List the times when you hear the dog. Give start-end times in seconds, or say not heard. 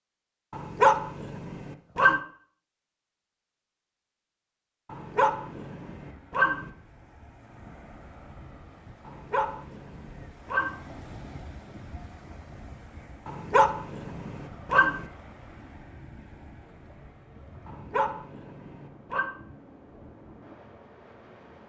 0.5-2.2, 4.9-6.7, 9.1-10.7, 13.2-15.1, 17.6-19.3.